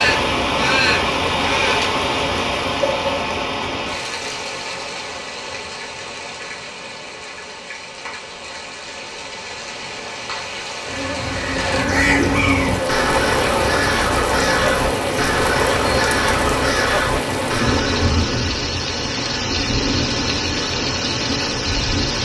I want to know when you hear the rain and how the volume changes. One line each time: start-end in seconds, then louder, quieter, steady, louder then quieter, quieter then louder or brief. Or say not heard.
0.0-22.2 quieter then louder.